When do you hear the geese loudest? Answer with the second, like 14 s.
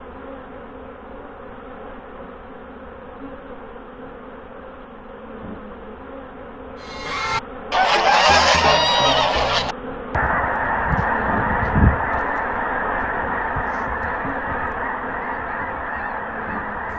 8 s.